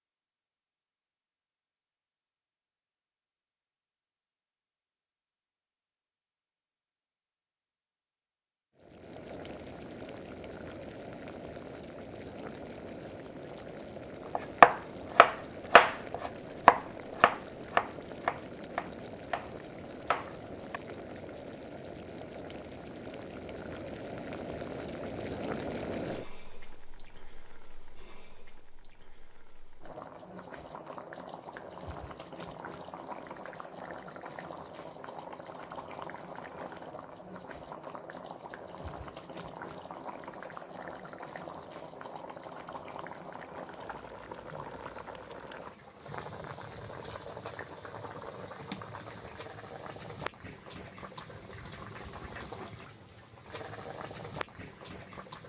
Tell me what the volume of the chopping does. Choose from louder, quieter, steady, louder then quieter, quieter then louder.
quieter.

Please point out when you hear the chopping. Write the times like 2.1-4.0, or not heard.
14.3-20.8.